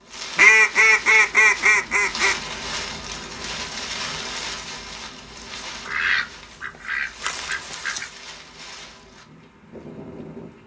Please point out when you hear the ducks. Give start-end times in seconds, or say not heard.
0.3-2.4, 5.8-8.1.